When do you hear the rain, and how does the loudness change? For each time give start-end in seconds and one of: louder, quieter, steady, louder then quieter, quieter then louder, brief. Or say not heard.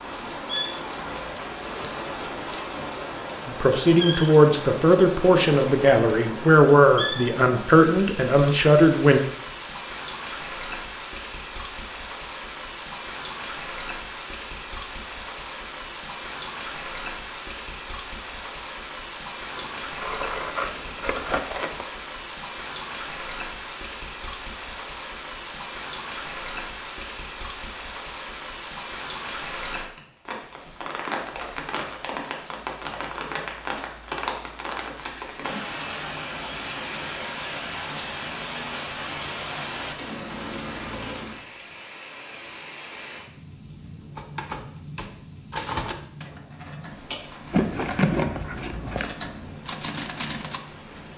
0.0-51.1 quieter.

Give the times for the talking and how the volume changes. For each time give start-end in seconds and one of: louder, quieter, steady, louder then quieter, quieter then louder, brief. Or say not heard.
3.5-9.2 steady.